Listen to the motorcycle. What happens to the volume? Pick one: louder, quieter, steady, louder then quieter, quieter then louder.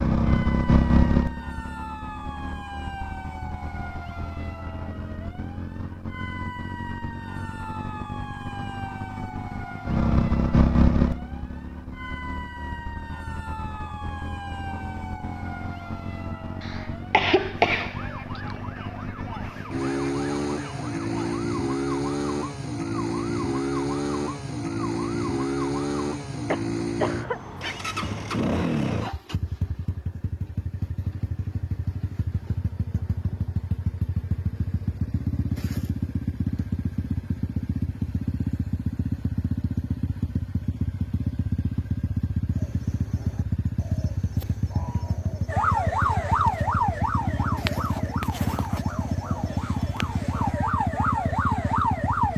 steady.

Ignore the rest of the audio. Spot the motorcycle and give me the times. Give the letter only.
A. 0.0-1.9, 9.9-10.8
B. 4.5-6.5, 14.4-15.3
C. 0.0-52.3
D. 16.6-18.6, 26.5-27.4
C.